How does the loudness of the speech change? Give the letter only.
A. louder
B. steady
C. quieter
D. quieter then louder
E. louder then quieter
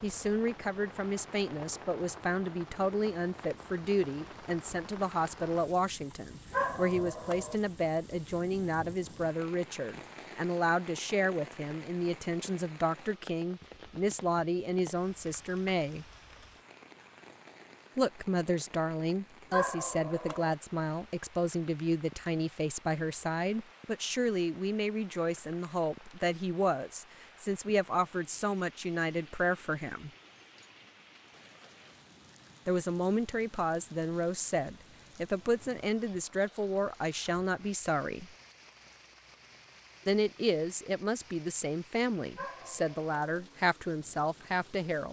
B.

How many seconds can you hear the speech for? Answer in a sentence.
The speech can be heard for 39 seconds in total.